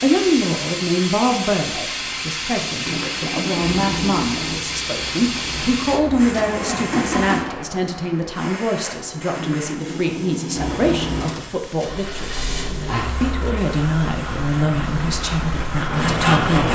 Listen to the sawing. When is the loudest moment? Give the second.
16 s.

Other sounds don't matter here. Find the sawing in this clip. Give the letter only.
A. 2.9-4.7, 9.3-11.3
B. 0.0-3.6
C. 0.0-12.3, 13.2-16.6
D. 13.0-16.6
D.